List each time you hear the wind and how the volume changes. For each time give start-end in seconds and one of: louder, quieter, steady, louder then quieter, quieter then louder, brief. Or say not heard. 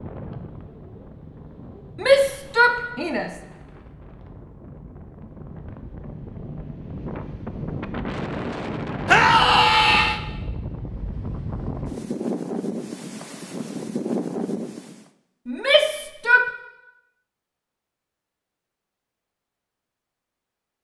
0.0-15.1 louder.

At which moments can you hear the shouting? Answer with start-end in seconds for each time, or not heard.
1.9-3.4, 9.1-10.2, 15.4-16.4.